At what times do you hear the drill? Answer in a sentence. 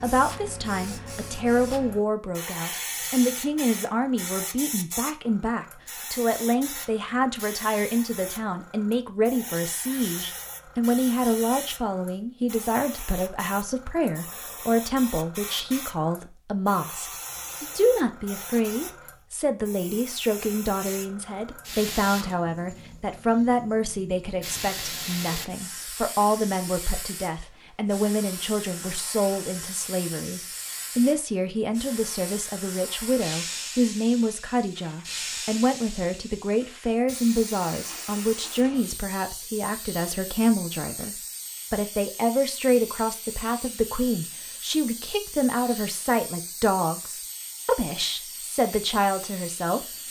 The drill can't be heard in this clip.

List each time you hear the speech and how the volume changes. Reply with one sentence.
You can hear the speech from 0.0 to 49.9 s, at a steady volume.